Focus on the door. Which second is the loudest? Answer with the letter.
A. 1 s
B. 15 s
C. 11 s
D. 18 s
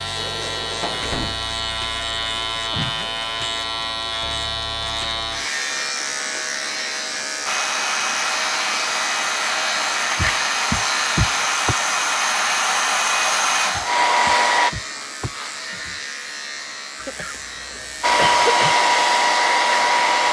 C.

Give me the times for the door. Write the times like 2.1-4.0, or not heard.
0.1-1.4, 10.2-11.8, 13.7-16.0.